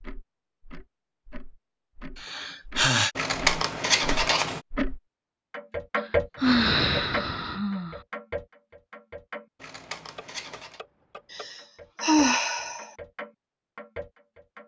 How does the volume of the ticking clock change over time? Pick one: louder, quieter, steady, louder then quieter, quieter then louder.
louder then quieter.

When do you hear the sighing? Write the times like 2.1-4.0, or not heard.
2.1-3.1, 6.0-8.0, 11.3-12.9.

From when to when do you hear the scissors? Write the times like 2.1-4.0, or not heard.
3.1-4.6, 9.6-10.8.